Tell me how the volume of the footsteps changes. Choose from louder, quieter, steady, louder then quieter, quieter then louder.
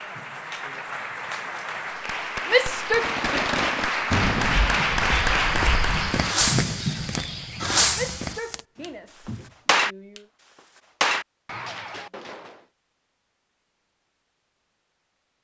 louder then quieter.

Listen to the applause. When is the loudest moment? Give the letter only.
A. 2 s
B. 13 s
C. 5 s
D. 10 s
C.